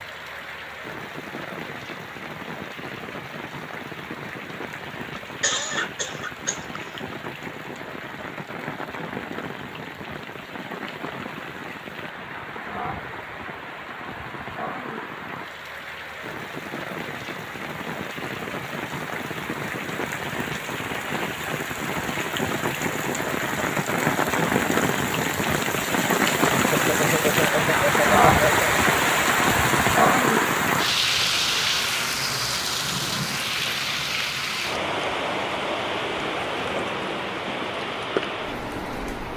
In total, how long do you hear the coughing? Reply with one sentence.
The coughing can be heard for 4 seconds in total.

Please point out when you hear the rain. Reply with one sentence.
The rain can be heard from 0.0 to 39.3 s.